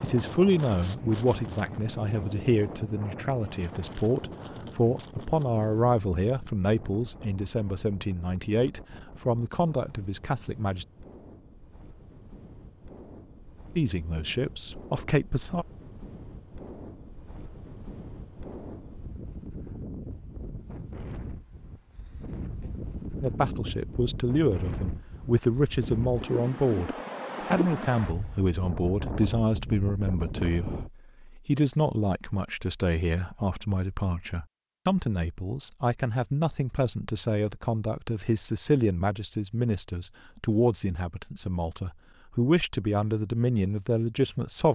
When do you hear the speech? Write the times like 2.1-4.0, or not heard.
0.0-10.8, 13.8-15.7, 23.2-44.7.